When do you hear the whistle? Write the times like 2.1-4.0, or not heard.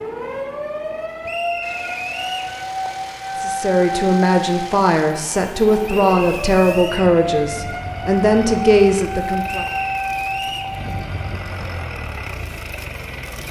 1.2-2.5, 5.8-7.2, 9.4-10.8.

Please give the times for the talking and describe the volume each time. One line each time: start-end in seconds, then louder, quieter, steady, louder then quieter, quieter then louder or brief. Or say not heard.
3.4-9.7 steady.